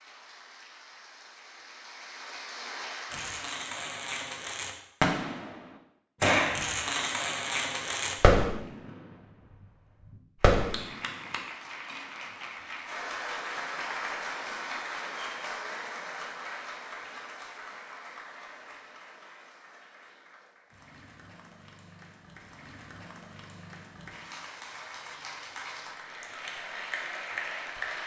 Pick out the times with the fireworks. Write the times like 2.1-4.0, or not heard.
3.1-5.5, 6.2-8.6, 10.4-11.1.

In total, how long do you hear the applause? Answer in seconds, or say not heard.
21 s.